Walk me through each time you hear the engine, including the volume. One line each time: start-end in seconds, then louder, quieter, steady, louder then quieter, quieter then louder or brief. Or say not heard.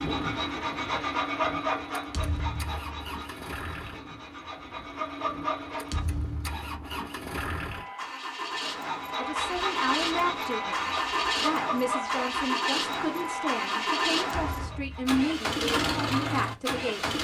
0.0-17.1 louder.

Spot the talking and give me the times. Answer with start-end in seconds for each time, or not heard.
9.2-17.1.